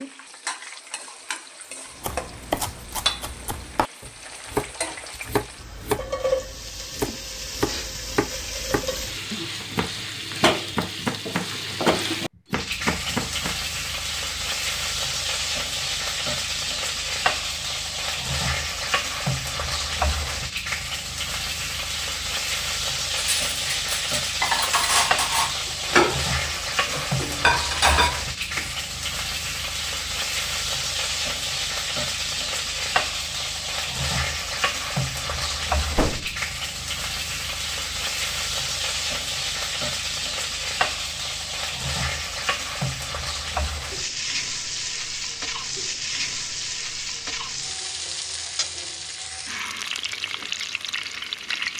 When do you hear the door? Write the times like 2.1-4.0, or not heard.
35.9-36.4.